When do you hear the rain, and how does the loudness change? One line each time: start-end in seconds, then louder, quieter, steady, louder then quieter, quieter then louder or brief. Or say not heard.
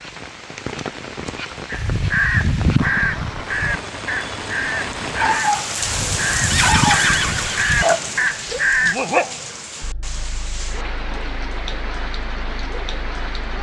0.0-13.5 louder then quieter.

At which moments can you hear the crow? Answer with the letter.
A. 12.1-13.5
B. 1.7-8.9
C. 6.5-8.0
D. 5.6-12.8
B.